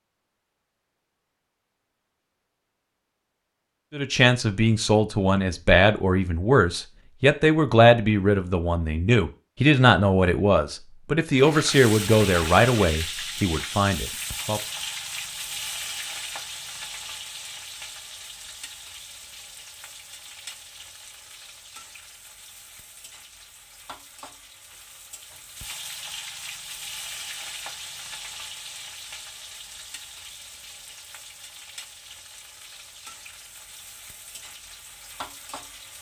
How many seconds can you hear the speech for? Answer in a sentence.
You can hear the speech for 11 seconds altogether.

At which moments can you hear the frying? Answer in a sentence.
You can hear the frying from 11.3 to 35.9 s.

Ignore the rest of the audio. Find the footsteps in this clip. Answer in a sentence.
The footsteps can't be heard in this clip.